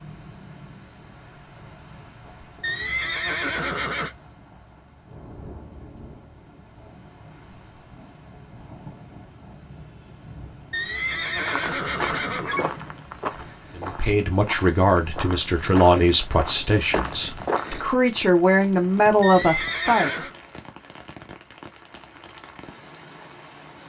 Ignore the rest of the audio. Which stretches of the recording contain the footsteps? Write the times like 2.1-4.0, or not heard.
11.4-17.9.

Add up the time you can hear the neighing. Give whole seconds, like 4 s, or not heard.
5 s.